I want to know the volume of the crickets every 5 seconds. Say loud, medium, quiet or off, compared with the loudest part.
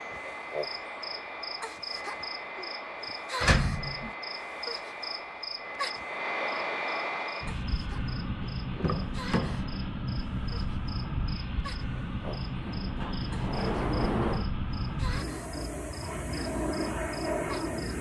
loud, loud, medium, medium.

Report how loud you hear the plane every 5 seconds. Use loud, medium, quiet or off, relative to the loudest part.
medium, loud, loud, loud.